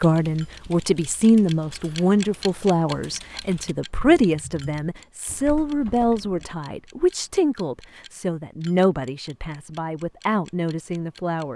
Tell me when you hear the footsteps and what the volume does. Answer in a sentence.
The footsteps can't be heard in this clip.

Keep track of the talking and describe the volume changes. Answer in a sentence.
The loudness of the talking goes down.